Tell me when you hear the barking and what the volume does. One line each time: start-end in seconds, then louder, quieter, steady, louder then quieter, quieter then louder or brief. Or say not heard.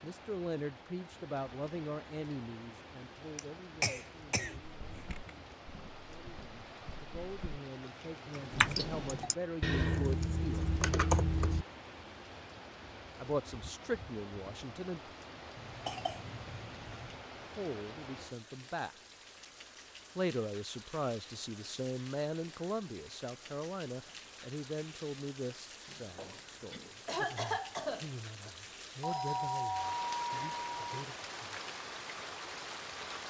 not heard.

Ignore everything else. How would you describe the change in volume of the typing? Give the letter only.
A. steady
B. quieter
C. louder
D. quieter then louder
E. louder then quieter
C.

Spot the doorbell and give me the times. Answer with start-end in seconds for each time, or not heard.
8.5-9.3, 29.0-31.1.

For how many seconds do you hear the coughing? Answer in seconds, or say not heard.
6 s.